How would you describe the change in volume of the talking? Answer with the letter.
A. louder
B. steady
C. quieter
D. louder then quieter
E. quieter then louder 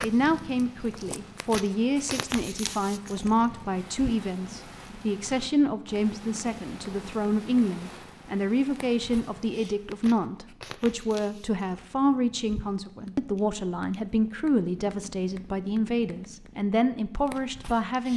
B.